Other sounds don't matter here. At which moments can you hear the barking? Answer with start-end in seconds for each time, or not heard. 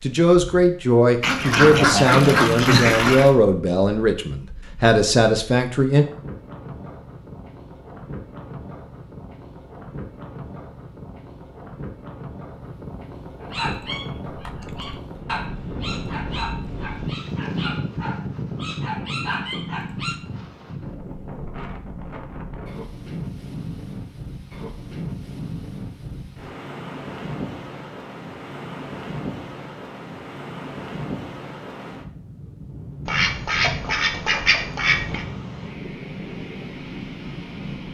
13.4-20.2.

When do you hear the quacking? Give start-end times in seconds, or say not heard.
1.2-3.3, 33.0-35.2.